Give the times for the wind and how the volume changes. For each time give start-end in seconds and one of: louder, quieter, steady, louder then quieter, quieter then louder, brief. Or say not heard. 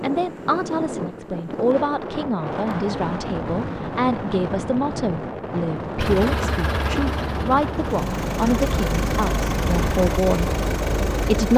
0.0-11.5 steady.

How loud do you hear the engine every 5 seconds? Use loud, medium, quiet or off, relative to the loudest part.
off, loud, loud.